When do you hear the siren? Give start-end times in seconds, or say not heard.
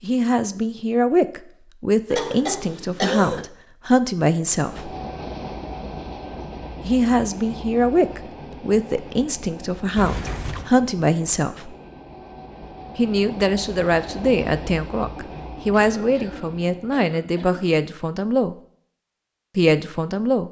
not heard.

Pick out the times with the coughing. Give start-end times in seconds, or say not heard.
2.1-3.5, 9.9-10.7, 15.9-17.8.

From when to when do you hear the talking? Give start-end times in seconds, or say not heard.
0.0-5.0, 6.8-11.8, 12.9-18.6, 19.6-20.4.